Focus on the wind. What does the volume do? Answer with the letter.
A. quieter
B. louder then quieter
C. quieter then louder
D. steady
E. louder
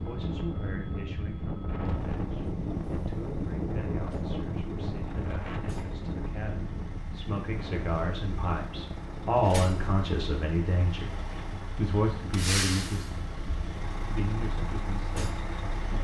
A.